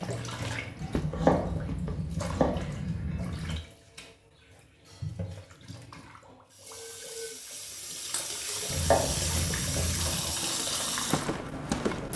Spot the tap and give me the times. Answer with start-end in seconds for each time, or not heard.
0.0-12.1.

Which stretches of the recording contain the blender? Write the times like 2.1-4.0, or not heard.
not heard.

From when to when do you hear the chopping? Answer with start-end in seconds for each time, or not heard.
0.8-3.5, 8.7-10.3.